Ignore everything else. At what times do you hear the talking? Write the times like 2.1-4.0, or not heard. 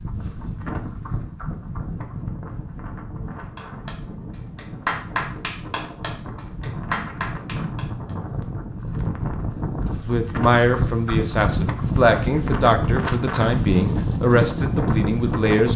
10.1-15.7.